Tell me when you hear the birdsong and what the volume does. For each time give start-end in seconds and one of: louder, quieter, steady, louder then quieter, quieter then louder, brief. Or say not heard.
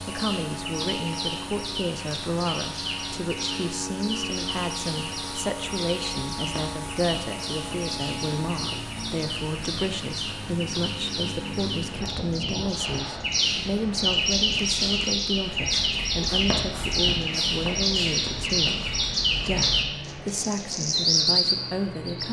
0.0-22.2 louder.